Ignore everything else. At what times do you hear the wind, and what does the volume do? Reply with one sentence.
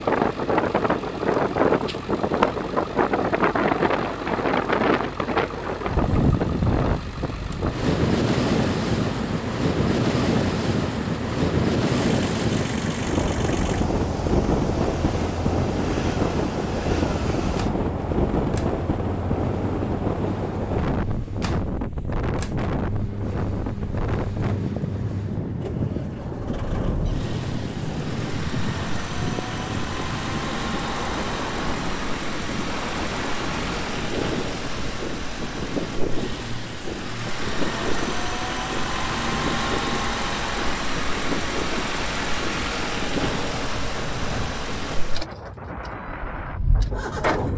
You can hear the wind from 0.0 to 47.4 s, getting quieter.